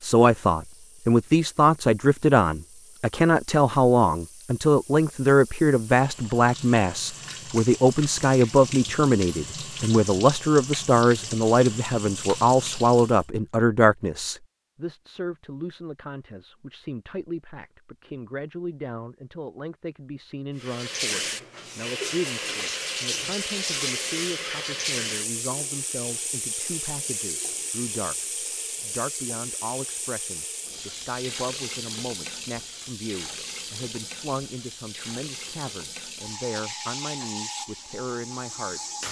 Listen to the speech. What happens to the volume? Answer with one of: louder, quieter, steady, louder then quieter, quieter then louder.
quieter.